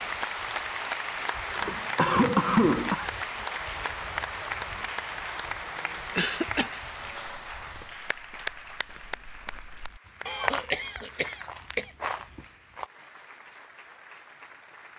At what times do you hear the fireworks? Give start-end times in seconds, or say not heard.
not heard.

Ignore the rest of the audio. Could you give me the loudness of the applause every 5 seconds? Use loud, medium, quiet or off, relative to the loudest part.
loud, medium, quiet.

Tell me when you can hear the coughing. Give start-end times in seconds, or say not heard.
1.5-3.1, 6.2-6.8, 10.2-11.9.